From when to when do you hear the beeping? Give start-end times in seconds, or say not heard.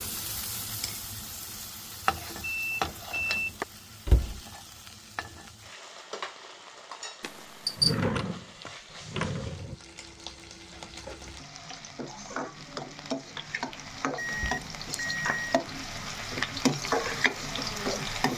2.4-3.6, 7.2-8.0, 14.2-15.6.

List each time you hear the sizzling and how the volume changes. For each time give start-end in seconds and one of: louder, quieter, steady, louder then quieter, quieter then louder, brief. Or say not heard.
0.0-18.3 quieter then louder.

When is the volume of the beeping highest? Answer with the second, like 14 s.
8 s.